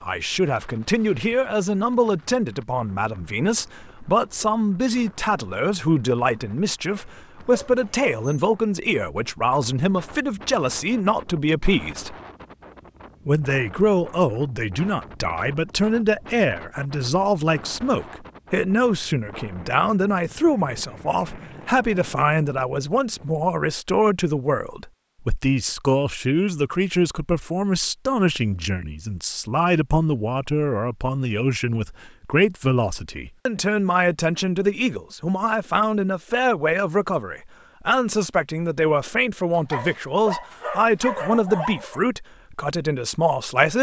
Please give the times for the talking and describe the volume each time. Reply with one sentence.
The talking can be heard from 0.0 to 12.2 s, at a steady volume; and from 13.2 to 43.7 s, at a steady volume.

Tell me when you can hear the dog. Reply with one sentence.
The dog can be heard from 6.8 to 8.4 s and from 39.5 to 42.0 s.